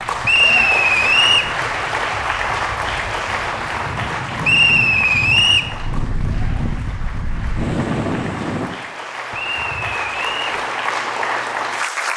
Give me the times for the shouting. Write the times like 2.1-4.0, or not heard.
not heard.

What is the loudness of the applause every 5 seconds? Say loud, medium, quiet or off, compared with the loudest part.
loud, medium, loud.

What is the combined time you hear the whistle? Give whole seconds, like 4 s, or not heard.
4 s.